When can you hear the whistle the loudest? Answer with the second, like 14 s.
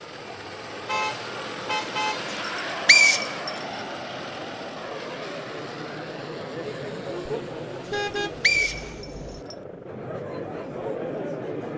3 s.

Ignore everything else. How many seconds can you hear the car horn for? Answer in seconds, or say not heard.
3 s.